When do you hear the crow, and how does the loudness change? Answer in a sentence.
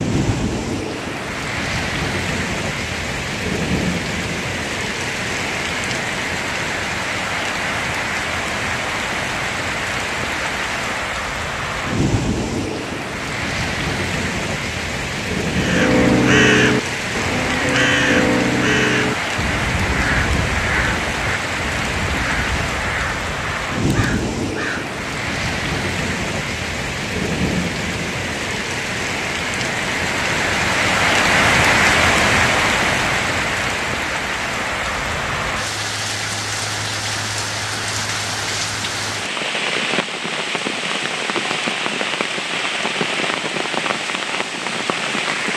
You can hear the crow from 15.5 to 24.9 s, getting quieter.